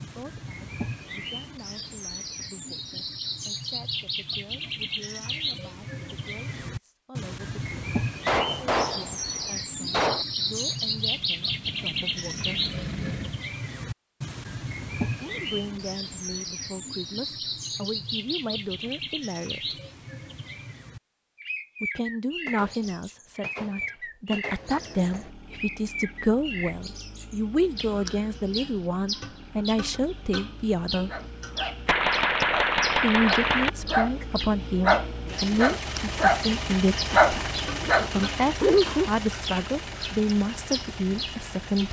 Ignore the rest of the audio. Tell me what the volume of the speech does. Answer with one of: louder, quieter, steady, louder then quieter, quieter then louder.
louder.